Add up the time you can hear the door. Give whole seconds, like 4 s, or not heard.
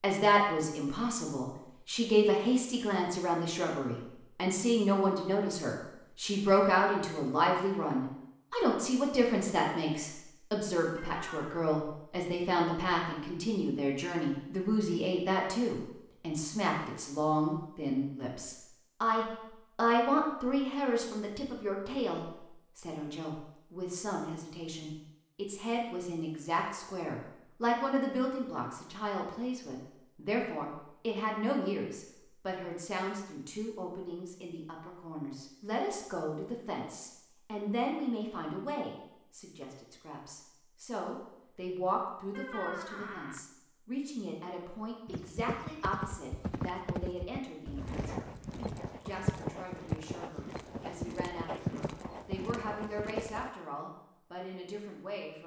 2 s.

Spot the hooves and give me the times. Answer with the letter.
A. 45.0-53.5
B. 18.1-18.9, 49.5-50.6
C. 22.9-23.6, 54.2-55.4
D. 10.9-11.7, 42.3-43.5
A.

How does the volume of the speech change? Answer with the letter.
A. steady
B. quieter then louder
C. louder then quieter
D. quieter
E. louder
D.